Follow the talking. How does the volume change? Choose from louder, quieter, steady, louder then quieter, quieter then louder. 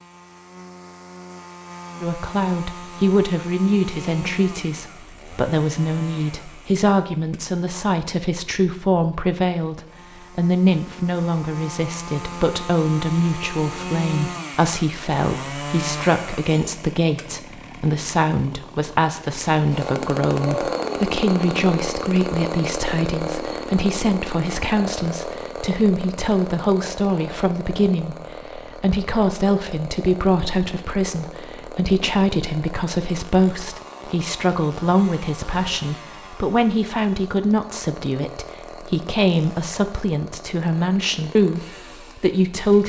steady.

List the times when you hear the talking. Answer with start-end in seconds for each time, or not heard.
2.0-42.8.